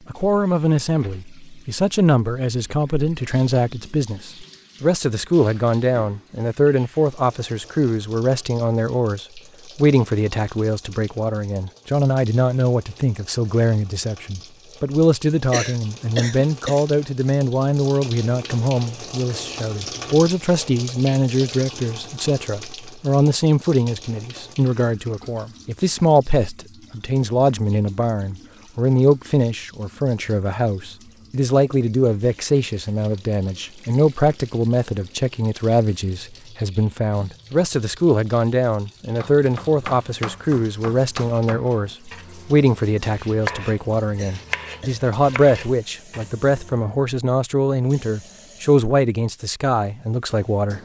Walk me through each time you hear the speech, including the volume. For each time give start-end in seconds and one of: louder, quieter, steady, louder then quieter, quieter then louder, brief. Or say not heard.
0.1-50.7 steady.